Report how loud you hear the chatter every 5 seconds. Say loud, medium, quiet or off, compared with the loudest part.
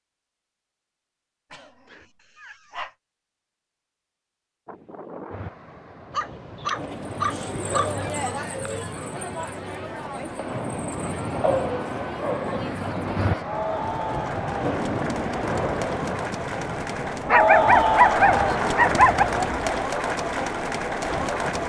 off, medium, medium, loud, loud.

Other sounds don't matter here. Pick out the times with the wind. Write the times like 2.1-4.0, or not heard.
4.7-21.6.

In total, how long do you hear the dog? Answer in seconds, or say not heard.
7 s.